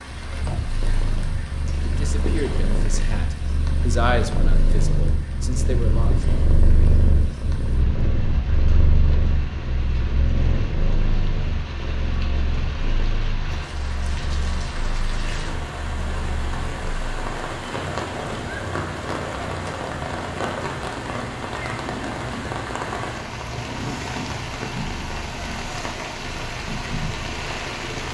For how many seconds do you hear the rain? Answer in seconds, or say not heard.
28 s.